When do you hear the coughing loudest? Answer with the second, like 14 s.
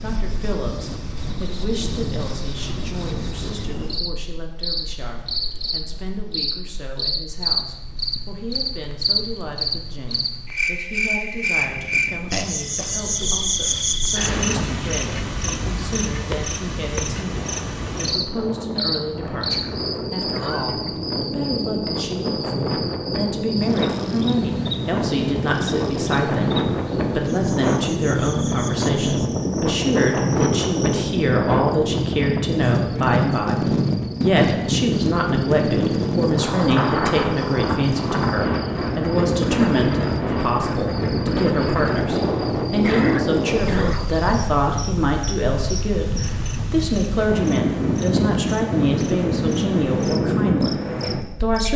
43 s.